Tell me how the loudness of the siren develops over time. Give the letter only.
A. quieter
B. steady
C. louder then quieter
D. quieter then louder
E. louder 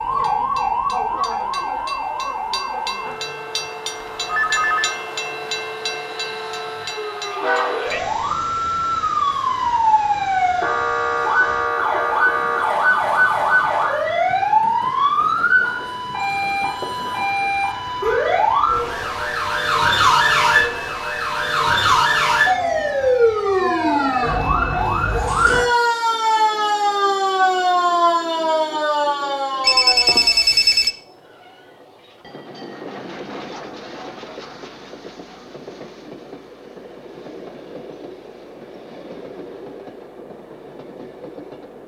E.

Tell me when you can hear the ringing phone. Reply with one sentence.
You can hear the ringing phone from 4.2 to 5.0 s, from 16.2 to 17.5 s and from 29.6 to 30.9 s.